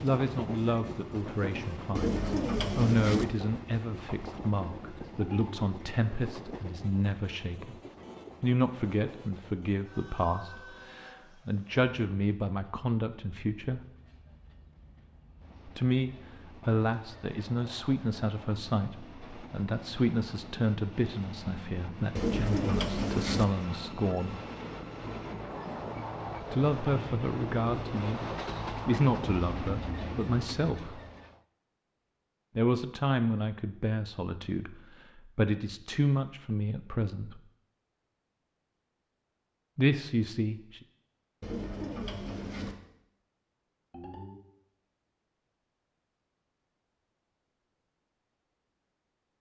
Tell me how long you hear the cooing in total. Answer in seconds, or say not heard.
4 s.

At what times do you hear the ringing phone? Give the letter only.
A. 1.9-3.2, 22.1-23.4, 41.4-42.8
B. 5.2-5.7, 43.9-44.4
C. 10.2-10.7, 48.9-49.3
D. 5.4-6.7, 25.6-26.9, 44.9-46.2
B.